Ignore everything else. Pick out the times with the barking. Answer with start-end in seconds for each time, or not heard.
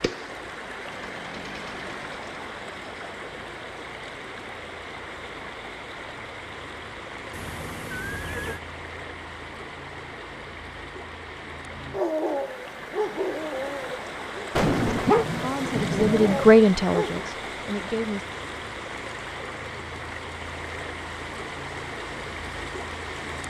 11.9-17.2.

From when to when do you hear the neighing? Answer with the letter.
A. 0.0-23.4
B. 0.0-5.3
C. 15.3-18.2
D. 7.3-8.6
D.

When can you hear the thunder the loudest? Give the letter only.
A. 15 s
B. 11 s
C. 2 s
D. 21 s
A.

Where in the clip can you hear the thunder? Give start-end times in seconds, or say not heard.
14.6-16.6.